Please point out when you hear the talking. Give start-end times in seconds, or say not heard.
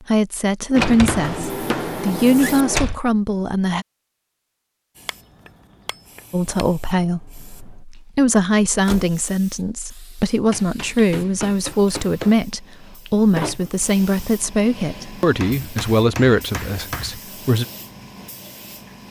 0.1-3.9, 6.3-17.6.